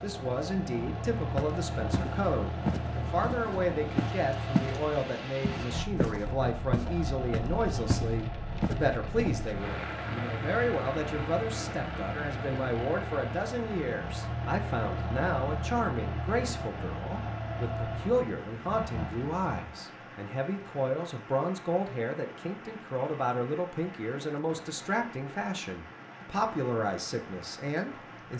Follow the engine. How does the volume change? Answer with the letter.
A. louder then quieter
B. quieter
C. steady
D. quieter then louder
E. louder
C.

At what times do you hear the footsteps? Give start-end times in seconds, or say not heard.
1.4-4.8, 5.4-9.5.